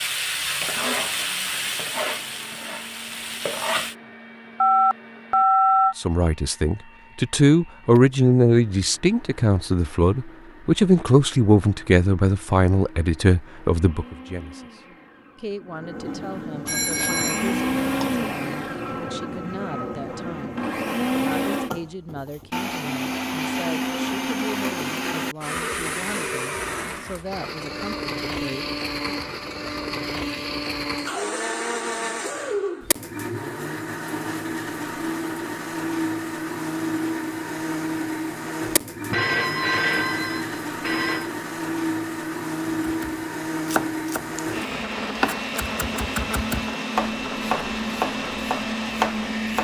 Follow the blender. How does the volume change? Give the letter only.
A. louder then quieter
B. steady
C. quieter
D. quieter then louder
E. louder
E.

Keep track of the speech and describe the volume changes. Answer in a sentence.
The loudness of the speech goes down.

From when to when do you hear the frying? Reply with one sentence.
You can hear the frying from 0.0 to 4.0 s.